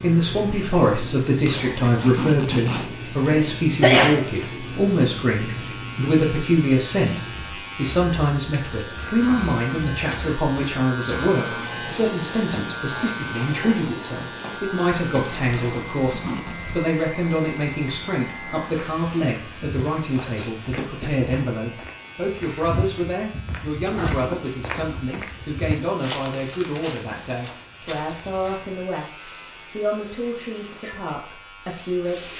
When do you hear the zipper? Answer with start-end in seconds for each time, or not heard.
1.4-3.0, 15.5-16.6, 23.9-24.9.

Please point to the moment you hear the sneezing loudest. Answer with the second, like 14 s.
4 s.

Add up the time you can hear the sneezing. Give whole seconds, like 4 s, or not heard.
2 s.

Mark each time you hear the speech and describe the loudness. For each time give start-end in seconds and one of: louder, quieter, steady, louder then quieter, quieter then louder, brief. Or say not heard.
0.0-32.3 quieter.